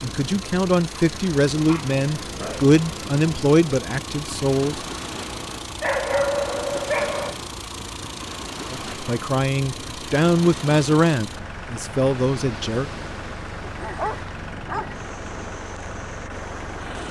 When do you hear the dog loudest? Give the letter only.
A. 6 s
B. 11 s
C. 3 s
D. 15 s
A.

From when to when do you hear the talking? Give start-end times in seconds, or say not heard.
0.0-4.8, 8.7-12.9.